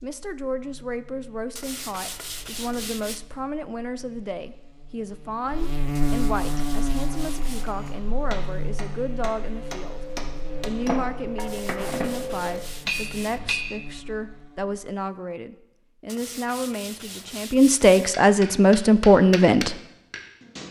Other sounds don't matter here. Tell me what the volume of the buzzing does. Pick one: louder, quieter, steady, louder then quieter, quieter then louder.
louder then quieter.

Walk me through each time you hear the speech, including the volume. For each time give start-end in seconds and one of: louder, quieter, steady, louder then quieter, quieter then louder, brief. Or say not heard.
0.0-10.0 steady
10.7-19.8 louder.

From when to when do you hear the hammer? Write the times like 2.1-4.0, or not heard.
6.5-13.8, 18.1-20.6.